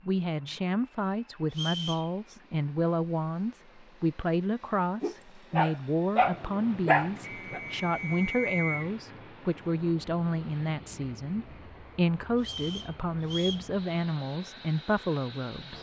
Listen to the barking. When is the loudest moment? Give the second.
7 s.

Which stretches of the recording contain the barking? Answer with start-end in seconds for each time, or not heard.
5.0-7.6.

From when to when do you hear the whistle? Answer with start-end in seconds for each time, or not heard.
1.5-2.1, 7.2-8.9, 12.4-13.7.